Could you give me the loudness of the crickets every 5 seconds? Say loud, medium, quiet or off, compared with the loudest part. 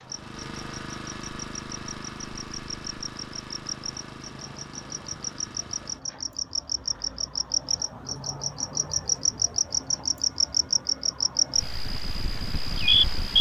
quiet, medium, loud.